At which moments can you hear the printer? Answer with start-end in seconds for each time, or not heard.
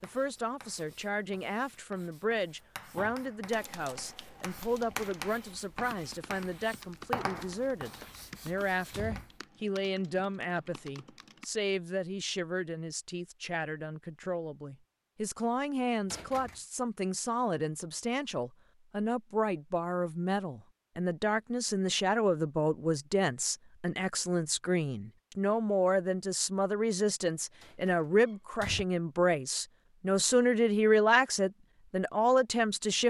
not heard.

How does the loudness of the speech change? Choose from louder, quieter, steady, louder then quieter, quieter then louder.
louder.